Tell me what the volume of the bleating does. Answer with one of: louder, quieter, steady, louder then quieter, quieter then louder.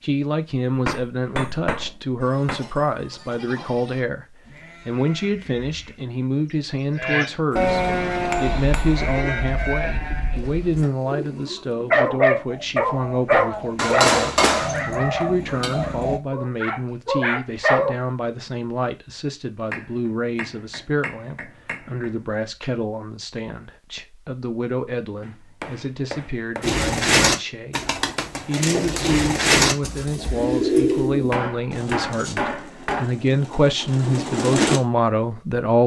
louder then quieter.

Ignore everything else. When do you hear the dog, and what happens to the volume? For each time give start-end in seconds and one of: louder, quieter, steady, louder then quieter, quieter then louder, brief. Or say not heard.
11.9-17.9 quieter then louder.